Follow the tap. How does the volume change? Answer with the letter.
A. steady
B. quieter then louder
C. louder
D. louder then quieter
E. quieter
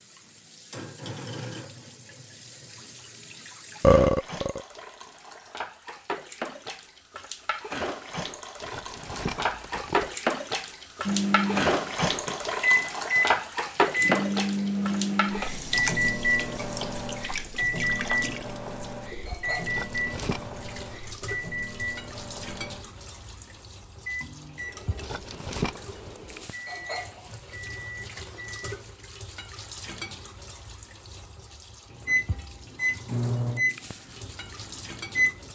D.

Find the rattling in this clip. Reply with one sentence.
The rattling can be heard from 8.6 to 10.2 s, from 19.6 to 20.5 s and from 24.9 to 25.8 s.